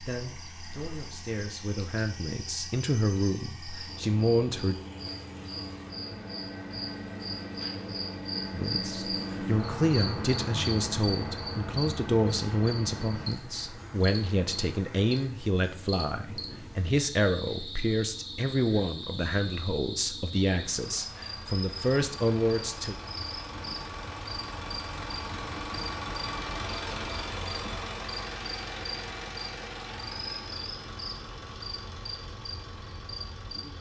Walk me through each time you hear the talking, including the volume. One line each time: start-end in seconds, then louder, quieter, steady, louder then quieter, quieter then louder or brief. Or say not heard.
0.1-4.8 louder
8.5-22.9 steady.